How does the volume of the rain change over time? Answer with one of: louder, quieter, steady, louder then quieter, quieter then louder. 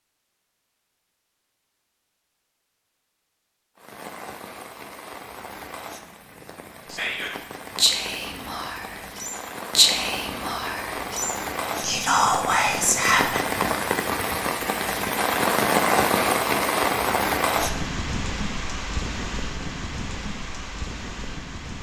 louder then quieter.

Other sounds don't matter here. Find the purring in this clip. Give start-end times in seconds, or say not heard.
not heard.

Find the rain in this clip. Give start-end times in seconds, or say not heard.
3.8-21.7.